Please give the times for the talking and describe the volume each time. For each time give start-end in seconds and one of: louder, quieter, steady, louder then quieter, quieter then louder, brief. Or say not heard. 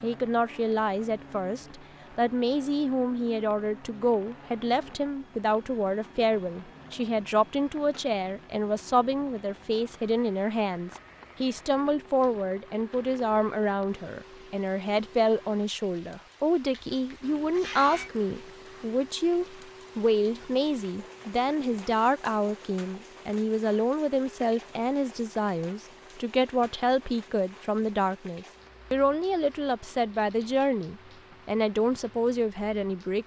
0.0-33.2 steady.